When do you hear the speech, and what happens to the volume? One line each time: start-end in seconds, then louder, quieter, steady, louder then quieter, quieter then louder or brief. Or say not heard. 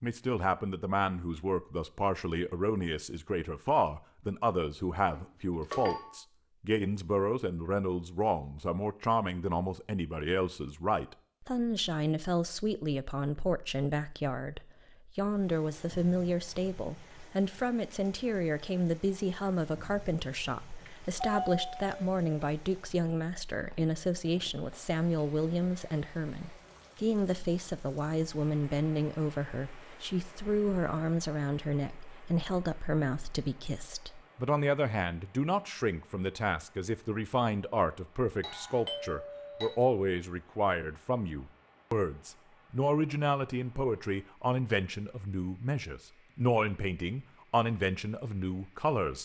0.0-49.1 steady.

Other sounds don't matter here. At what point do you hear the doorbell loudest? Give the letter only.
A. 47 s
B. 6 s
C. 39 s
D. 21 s
D.